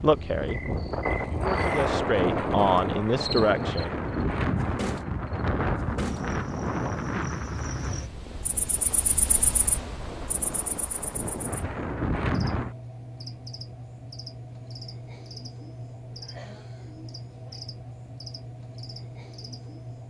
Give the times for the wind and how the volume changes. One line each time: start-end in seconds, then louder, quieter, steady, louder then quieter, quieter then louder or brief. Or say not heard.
0.0-12.8 quieter then louder.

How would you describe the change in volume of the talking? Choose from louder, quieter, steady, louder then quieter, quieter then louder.
louder.